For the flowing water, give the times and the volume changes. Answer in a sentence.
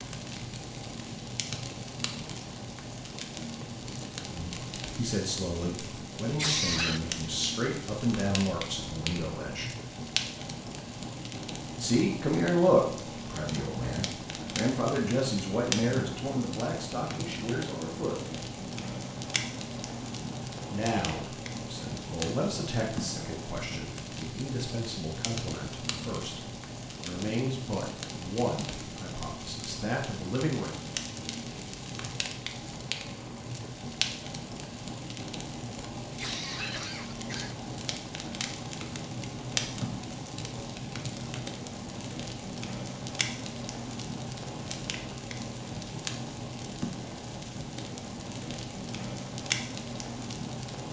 The flowing water can't be heard in this clip.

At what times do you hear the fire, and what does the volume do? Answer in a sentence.
The fire can be heard from 0.0 to 50.8 s, at a steady volume.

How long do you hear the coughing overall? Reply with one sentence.
The coughing can be heard for 2 seconds in total.